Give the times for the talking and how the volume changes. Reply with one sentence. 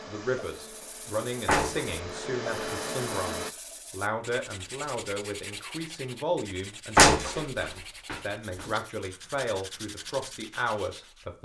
The talking can be heard from 0.1 to 11.4 s, at a steady volume.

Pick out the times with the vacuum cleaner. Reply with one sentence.
You can hear the vacuum cleaner from 0.0 to 3.5 s.